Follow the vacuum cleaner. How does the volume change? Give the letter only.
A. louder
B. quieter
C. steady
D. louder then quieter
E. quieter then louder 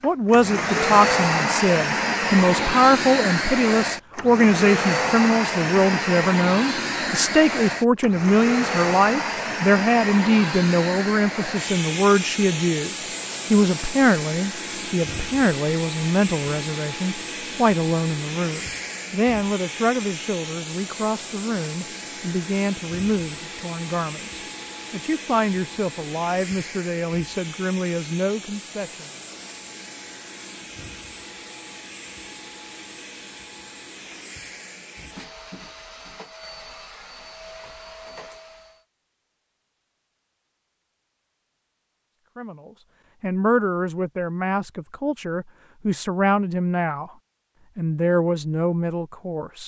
B.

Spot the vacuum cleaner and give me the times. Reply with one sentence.
You can hear the vacuum cleaner from 0.0 to 38.9 s.